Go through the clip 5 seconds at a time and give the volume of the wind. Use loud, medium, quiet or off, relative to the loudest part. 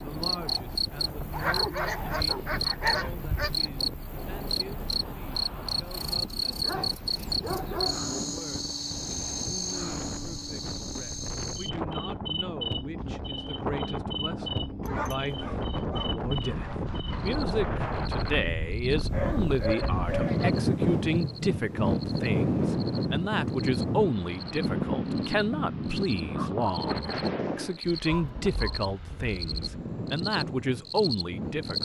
quiet, quiet, medium, medium, loud, medium, medium.